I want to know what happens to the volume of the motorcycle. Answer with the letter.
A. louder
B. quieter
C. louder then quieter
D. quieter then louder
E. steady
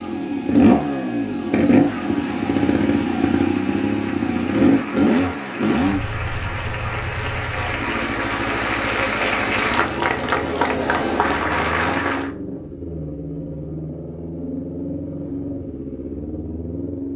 B.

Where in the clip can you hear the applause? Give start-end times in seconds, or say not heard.
1.7-12.3.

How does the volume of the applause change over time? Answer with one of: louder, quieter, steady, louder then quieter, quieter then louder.
louder.